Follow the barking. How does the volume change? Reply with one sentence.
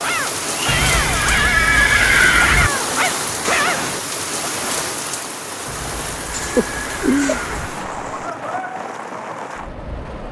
The loudness of the barking stays about the same.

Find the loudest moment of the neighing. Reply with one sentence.
The volume of the neighing peaks at 2 seconds.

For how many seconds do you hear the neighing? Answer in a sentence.
The neighing can be heard for 4 seconds in total.